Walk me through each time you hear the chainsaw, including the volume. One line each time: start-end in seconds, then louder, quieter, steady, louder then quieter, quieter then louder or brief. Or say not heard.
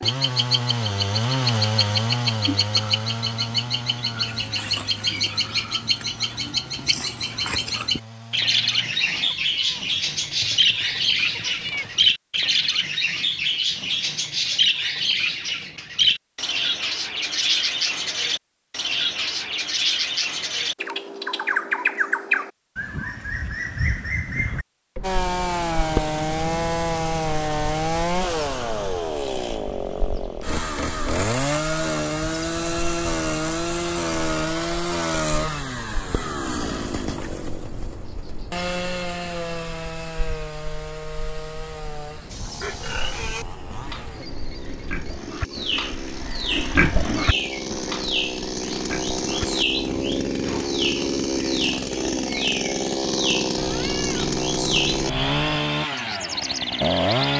0.0-9.3 quieter
25.0-57.3 quieter then louder.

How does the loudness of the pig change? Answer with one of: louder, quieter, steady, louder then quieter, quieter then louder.
louder then quieter.